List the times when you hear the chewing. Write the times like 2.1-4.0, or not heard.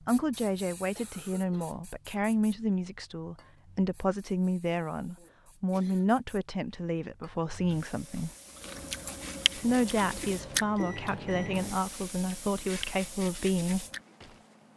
7.8-14.4.